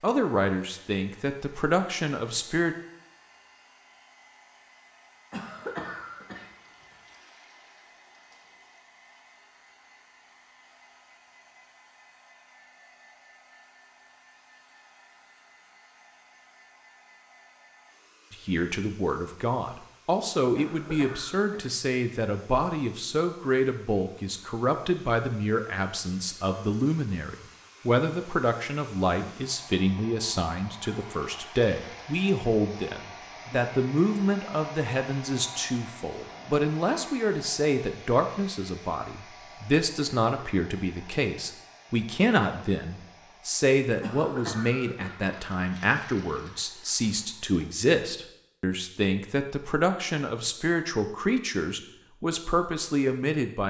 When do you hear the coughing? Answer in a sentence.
You can hear the coughing from 5.3 to 7.0 s, from 20.6 to 21.8 s and from 44.0 to 45.2 s.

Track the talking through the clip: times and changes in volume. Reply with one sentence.
You can hear the talking briefly from 0.0 to 2.8 s; and from 18.3 to 53.6 s, at a steady volume.